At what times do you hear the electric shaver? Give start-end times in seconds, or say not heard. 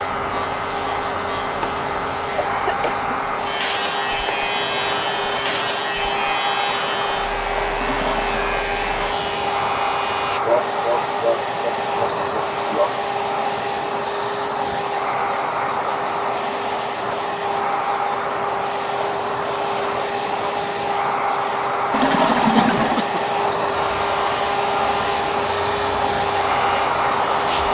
0.0-10.4, 23.7-27.6.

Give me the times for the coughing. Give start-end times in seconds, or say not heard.
2.4-3.1, 10.4-12.9, 22.4-23.2.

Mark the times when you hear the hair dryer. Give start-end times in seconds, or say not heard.
0.0-27.6.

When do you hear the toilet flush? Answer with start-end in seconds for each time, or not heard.
7.8-8.4, 21.9-23.0.